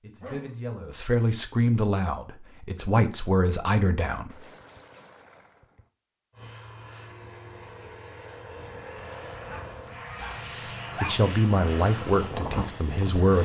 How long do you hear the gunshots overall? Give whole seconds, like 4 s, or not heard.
2 s.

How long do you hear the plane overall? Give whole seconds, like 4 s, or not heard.
7 s.